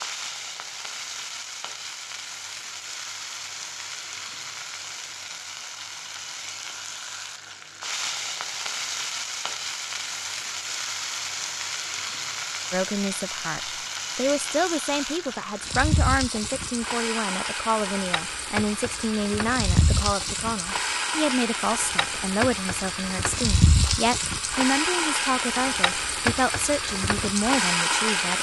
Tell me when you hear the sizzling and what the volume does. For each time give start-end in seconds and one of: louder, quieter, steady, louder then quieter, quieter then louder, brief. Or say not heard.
0.0-28.3 louder.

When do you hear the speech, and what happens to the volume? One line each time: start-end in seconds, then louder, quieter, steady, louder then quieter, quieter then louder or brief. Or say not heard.
12.7-28.3 steady.